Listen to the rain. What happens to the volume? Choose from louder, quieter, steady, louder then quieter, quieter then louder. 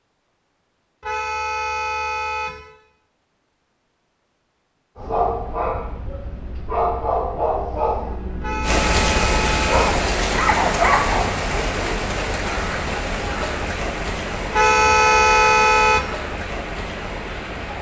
quieter.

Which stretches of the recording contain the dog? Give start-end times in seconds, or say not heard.
5.0-11.6.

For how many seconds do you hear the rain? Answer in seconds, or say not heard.
9 s.